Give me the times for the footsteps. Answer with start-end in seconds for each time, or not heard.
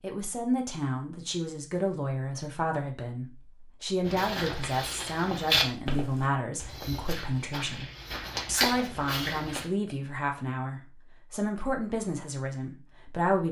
4.0-9.7.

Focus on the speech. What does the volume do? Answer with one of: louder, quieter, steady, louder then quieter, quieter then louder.
steady.